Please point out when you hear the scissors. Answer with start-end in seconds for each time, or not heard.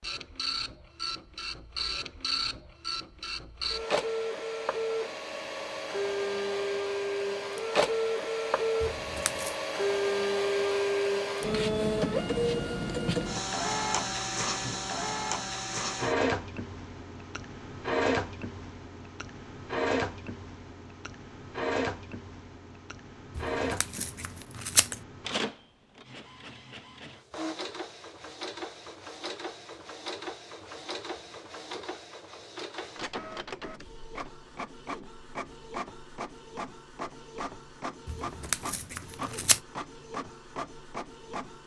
8.8-9.6, 23.4-25.1, 38.0-39.6.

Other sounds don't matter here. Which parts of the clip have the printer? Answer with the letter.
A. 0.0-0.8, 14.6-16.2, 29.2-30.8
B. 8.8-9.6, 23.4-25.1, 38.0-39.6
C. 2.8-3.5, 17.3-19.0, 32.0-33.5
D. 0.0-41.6
D.